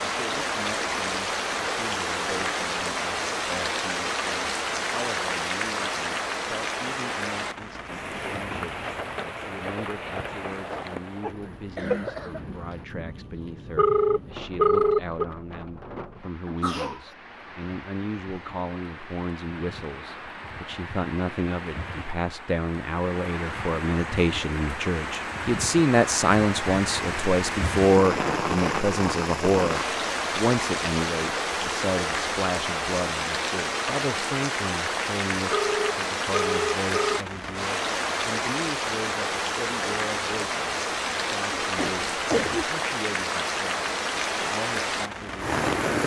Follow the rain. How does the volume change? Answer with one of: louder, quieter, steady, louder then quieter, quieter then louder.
quieter then louder.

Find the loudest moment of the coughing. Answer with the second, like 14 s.
42 s.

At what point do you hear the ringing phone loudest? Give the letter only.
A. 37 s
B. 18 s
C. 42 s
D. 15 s
D.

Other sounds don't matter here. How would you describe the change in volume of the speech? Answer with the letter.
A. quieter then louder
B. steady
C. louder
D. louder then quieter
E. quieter
D.